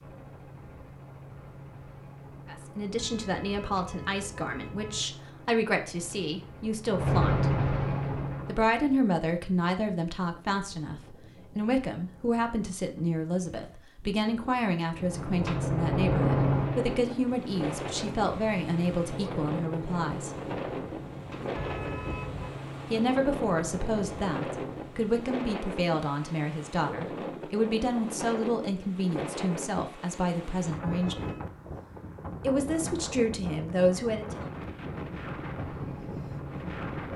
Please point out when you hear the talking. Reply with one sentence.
The talking can be heard from 2.5 to 7.5 s, from 8.4 to 20.3 s, from 22.9 to 31.2 s and from 32.4 to 34.5 s.